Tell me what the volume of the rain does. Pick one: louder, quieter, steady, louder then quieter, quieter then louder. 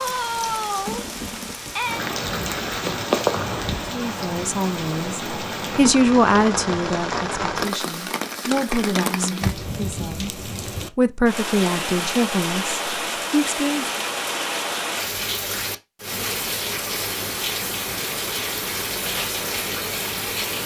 steady.